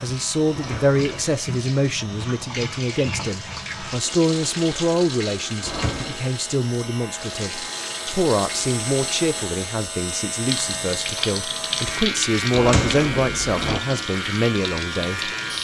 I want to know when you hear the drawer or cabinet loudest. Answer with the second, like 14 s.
13 s.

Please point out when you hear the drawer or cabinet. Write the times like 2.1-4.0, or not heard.
0.5-1.4, 5.6-6.2, 12.5-13.8.